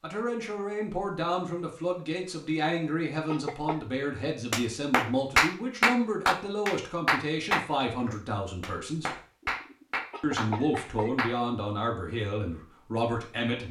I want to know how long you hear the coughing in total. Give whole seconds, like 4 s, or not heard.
3 s.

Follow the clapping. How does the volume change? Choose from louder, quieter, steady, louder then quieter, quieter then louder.
quieter.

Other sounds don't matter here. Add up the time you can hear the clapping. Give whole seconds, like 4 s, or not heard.
7 s.